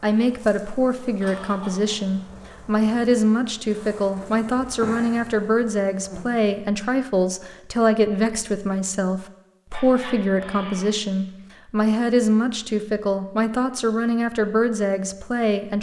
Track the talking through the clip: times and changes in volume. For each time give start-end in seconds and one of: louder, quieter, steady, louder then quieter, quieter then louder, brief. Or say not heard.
0.0-15.7 steady.